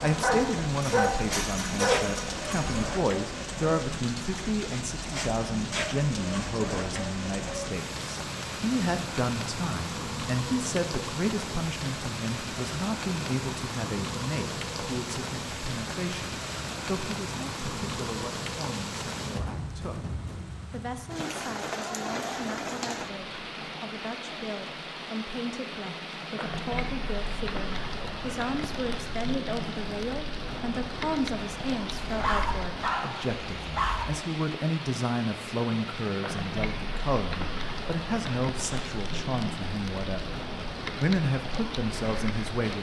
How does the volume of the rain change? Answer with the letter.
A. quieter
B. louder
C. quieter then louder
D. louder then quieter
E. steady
E.